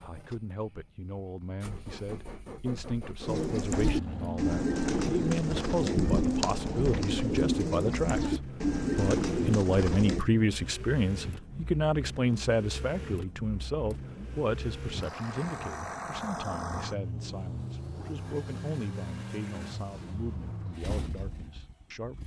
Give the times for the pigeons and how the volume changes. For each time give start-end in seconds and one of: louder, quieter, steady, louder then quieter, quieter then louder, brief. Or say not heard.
3.2-10.2 steady.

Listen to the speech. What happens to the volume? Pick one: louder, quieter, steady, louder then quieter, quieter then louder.
louder then quieter.